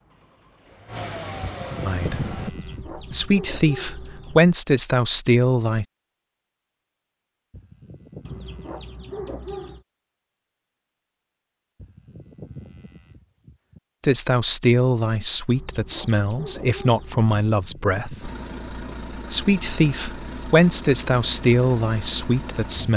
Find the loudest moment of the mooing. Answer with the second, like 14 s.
2 s.